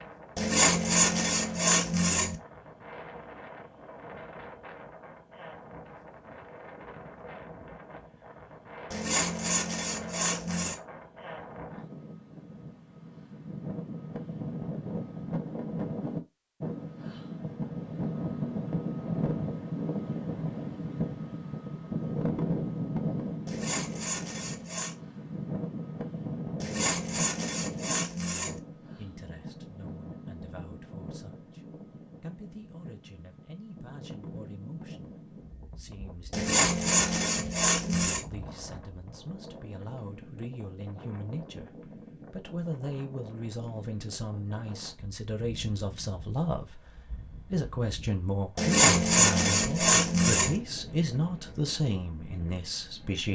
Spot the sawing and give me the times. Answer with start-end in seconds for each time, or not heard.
0.3-2.4, 8.9-10.8, 23.4-24.9, 26.6-28.6, 36.3-38.2, 48.5-50.6.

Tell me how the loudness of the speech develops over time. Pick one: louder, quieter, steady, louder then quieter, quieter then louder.
louder.